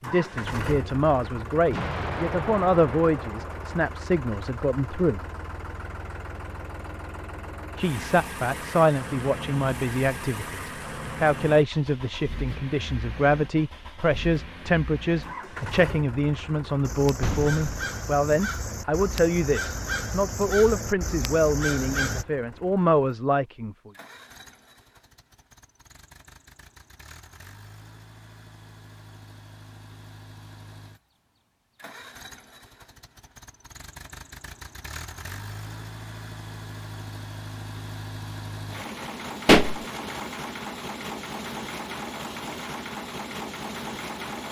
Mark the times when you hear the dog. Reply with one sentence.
You can't hear the dog here.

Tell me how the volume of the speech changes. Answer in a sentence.
The volume of the speech stays about the same.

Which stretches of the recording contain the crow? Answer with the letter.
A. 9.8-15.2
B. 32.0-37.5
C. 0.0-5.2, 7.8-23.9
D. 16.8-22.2
D.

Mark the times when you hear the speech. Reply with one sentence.
The speech can be heard from 0.0 to 5.2 s and from 7.8 to 23.9 s.